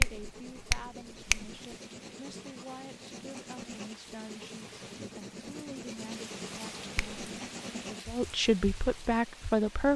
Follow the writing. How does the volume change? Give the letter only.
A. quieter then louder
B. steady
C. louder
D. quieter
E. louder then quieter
C.